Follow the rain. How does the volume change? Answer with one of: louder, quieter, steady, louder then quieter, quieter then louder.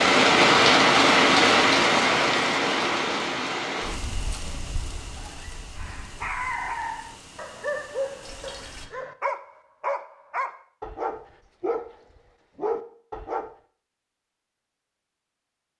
quieter.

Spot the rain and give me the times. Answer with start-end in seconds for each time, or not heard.
0.0-8.9.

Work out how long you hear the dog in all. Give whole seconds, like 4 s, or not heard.
7 s.